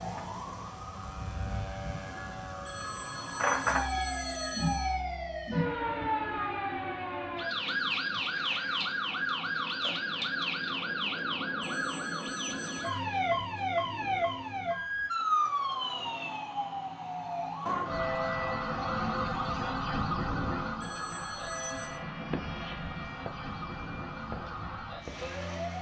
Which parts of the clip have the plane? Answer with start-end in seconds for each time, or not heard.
0.1-6.6, 21.7-25.7.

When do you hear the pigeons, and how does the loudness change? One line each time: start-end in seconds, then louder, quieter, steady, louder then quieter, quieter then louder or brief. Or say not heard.
not heard.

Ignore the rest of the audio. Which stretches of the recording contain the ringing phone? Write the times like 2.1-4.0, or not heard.
2.6-5.0, 11.6-13.0, 20.8-22.0.